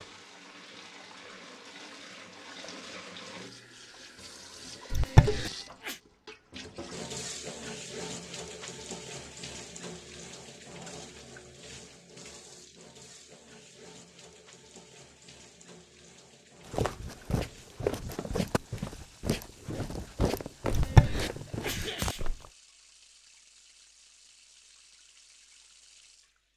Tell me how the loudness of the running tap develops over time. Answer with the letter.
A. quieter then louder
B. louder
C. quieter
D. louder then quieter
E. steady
C.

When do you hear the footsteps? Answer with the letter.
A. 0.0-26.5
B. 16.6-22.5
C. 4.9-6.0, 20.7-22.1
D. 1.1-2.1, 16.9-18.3
B.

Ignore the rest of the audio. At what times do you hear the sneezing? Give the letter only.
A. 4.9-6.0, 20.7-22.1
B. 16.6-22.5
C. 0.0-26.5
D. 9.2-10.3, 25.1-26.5
A.